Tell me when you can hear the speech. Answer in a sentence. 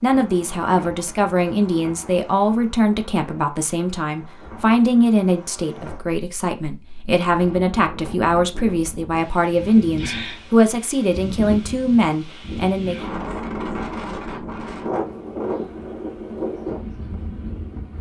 The speech can be heard from 0.0 to 13.1 s.